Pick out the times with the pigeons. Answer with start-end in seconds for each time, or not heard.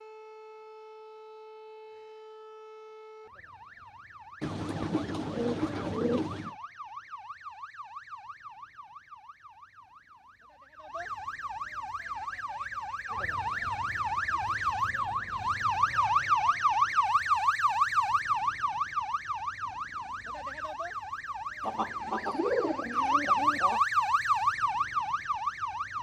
4.4-6.5, 21.6-23.8.